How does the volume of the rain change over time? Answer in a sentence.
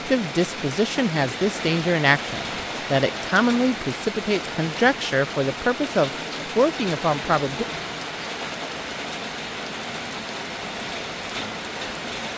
The loudness of the rain stays about the same.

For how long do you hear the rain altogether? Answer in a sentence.
You can hear the rain for 12 seconds altogether.